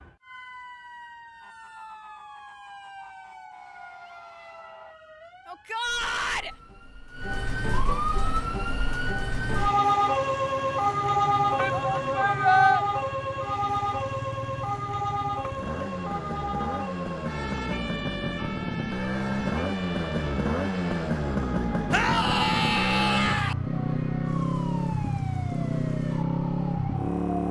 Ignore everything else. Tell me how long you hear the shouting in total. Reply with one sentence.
You can hear the shouting for 4 seconds altogether.